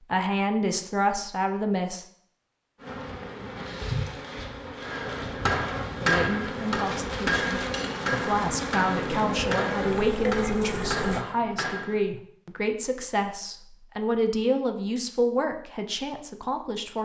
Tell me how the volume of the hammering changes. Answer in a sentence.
The loudness of the hammering goes down.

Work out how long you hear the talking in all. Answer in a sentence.
You can hear the talking for 13 seconds altogether.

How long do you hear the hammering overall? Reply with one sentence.
You can hear the hammering for 7 seconds altogether.